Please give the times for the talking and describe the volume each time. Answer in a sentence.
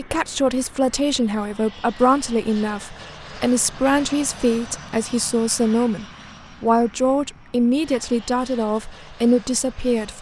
You can hear the talking from 0.0 to 10.1 s, at a steady volume.